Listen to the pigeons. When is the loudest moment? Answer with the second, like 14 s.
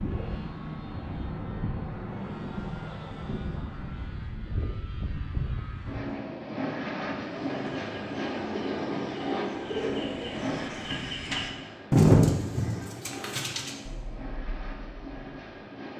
12 s.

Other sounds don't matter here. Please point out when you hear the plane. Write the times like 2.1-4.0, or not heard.
0.0-15.9.